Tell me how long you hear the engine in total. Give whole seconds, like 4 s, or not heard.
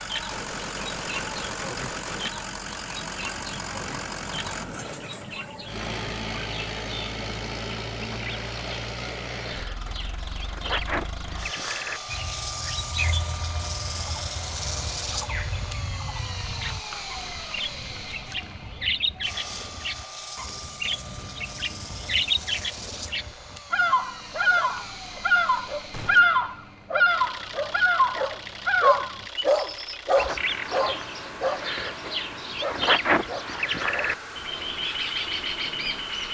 36 s.